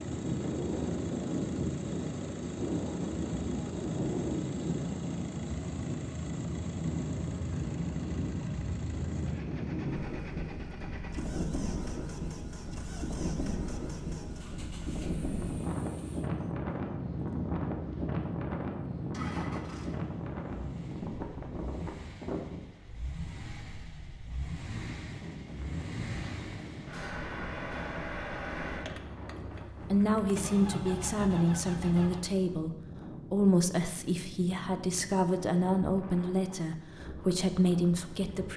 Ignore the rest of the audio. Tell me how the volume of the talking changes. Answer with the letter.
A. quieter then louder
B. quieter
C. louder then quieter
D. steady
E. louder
D.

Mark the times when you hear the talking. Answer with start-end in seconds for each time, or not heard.
29.4-38.5.